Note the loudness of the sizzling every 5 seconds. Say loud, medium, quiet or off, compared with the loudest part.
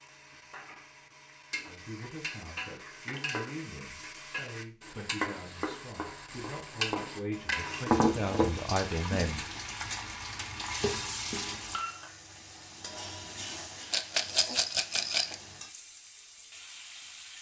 medium, loud, medium, quiet.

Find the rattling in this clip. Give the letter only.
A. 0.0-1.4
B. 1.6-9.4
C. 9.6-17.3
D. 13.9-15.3
D.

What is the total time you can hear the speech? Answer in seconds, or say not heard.
8 s.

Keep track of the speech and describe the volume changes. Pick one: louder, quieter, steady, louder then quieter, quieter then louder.
louder.